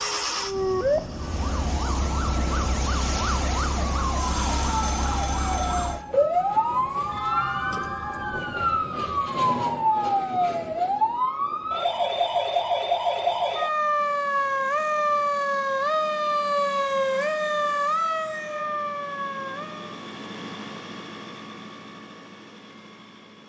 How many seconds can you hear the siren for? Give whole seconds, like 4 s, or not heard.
20 s.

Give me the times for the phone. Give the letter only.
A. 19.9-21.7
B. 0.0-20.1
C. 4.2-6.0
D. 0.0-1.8
C.